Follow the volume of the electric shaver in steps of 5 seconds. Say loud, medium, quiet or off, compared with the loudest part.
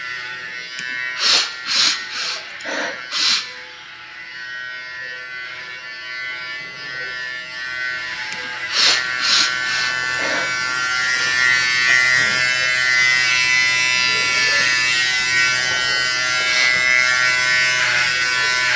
quiet, medium, loud, loud.